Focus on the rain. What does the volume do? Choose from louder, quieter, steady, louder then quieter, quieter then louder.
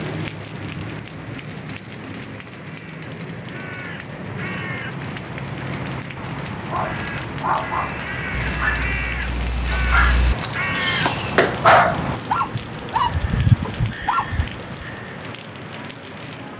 steady.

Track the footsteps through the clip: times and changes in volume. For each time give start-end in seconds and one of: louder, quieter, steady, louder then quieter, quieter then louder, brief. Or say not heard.
not heard.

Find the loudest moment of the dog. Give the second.
12 s.